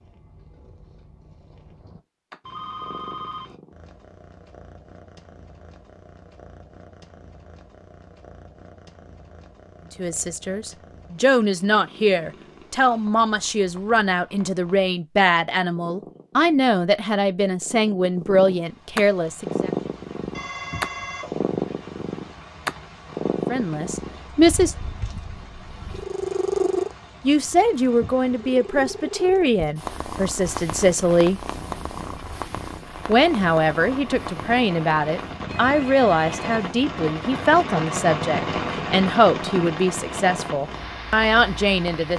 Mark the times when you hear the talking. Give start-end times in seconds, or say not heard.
9.9-19.7, 23.4-24.8, 27.2-31.4, 33.0-42.1.